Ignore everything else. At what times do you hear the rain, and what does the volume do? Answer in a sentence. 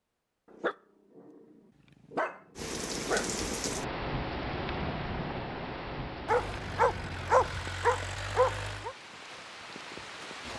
You can hear the rain from 2.5 to 10.5 s, getting quieter.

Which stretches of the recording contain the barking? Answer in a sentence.
You can hear the barking from 0.5 to 3.3 s and from 6.2 to 8.9 s.